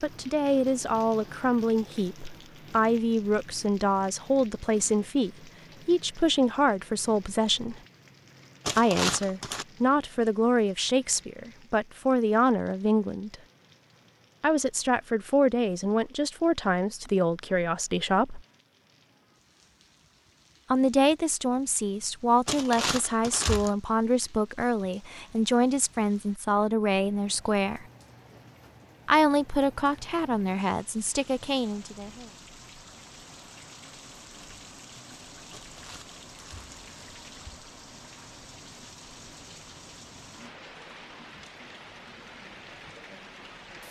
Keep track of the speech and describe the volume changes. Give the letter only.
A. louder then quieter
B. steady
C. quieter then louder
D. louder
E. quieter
B.